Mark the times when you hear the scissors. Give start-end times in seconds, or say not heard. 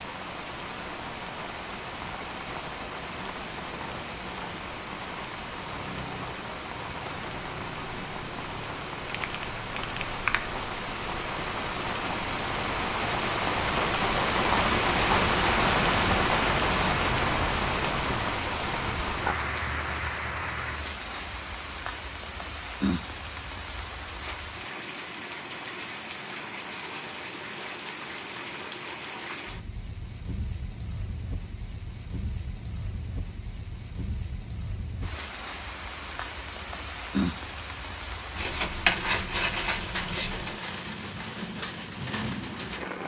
38.4-40.5.